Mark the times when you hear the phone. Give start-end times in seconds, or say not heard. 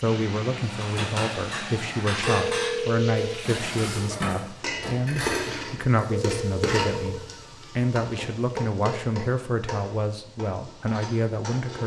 2.2-3.3, 6.1-7.2.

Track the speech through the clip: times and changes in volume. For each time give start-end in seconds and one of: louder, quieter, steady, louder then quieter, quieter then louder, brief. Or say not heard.
0.0-11.8 steady.